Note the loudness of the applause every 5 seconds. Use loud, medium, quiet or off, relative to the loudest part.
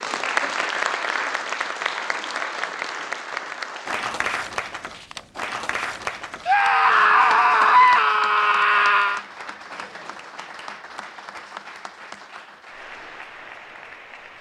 loud, medium, quiet.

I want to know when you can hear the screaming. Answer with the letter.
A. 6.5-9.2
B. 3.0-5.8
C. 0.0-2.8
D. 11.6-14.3
A.